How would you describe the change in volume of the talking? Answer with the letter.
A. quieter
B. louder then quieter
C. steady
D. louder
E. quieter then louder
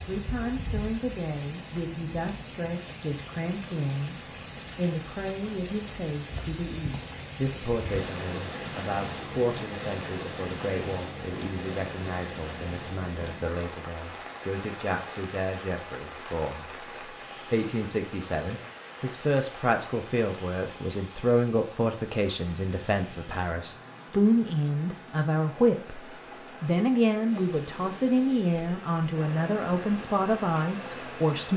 D.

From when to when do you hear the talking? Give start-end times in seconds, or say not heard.
0.1-31.5.